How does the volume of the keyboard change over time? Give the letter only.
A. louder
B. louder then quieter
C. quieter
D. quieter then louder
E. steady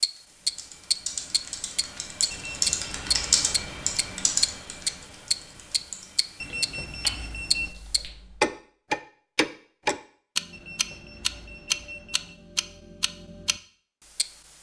B.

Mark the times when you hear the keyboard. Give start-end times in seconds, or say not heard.
0.1-8.6.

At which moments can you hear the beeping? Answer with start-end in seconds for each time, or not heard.
2.3-3.1, 6.4-7.8, 10.5-12.3.